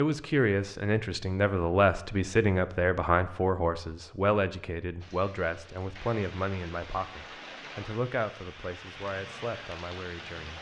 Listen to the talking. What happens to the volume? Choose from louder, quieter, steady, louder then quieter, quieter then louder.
quieter.